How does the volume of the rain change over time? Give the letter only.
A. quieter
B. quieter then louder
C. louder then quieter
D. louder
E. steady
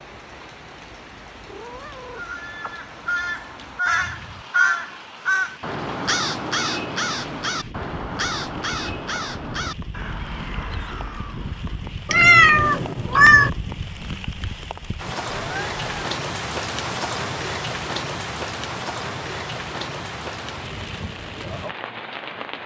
D.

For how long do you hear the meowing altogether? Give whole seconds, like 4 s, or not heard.
3 s.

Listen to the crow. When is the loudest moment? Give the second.
5 s.